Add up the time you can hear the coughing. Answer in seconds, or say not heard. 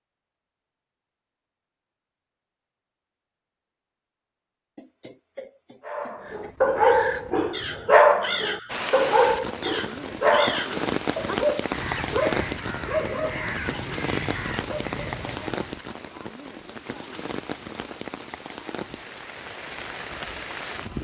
2 s.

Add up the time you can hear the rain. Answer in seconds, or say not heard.
12 s.